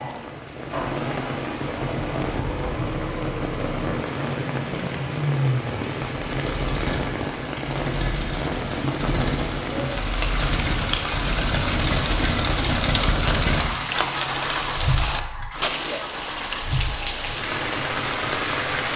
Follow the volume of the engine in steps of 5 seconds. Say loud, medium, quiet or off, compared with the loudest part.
medium, loud, loud, medium.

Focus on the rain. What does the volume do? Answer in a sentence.
The volume of the rain stays about the same.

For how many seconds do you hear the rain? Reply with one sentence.
You can hear the rain for 19 seconds altogether.